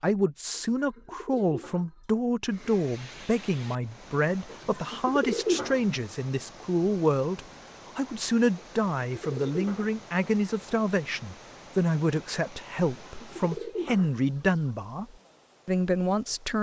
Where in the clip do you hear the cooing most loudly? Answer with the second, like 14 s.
5 s.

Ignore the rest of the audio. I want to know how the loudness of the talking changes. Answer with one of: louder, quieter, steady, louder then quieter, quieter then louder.
steady.